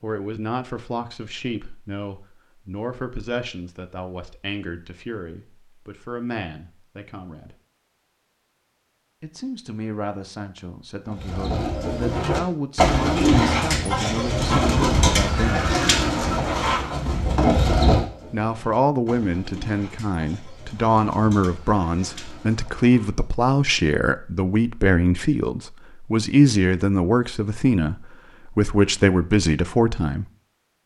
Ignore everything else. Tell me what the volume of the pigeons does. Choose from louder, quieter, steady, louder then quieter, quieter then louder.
quieter.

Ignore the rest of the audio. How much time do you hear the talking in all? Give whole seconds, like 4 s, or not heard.
26 s.